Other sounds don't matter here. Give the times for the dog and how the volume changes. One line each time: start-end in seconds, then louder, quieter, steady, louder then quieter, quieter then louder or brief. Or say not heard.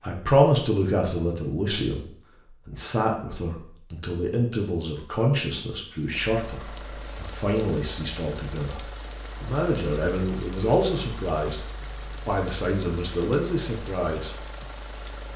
not heard.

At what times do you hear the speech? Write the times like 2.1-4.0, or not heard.
0.0-11.7, 12.2-14.3.